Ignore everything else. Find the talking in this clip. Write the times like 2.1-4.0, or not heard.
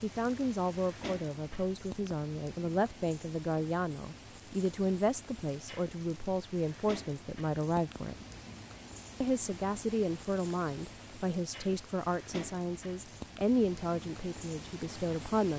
0.0-8.2, 9.2-15.5.